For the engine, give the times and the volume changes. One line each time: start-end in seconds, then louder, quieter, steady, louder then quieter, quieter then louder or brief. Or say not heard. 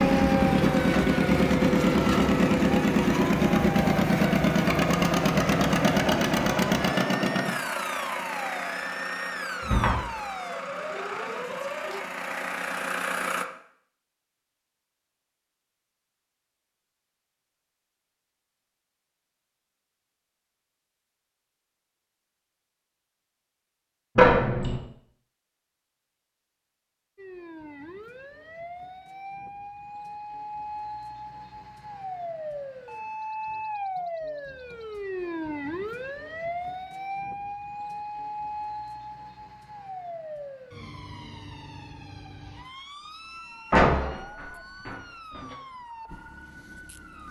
0.0-13.4 quieter.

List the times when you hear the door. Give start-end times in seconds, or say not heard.
9.6-10.0, 24.1-24.8, 43.7-44.9.